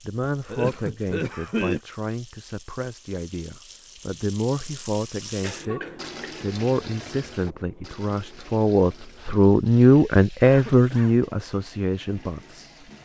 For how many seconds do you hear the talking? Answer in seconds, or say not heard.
12 s.